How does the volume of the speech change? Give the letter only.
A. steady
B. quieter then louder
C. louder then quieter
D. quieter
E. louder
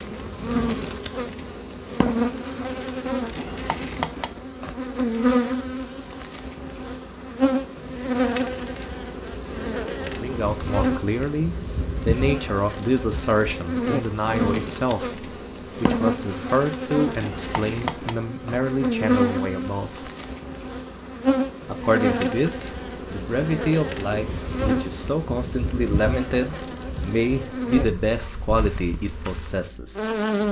A.